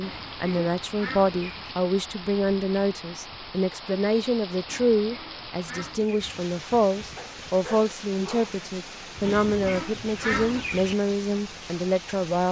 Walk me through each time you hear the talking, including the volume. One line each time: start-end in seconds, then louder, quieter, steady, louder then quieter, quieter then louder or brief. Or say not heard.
0.0-12.4 steady.